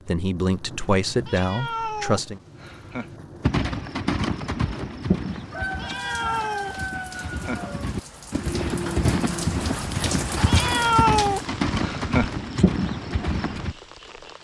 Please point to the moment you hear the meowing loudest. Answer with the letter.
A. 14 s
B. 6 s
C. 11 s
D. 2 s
C.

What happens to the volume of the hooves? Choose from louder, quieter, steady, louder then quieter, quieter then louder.
quieter then louder.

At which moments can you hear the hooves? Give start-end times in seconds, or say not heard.
3.4-13.8.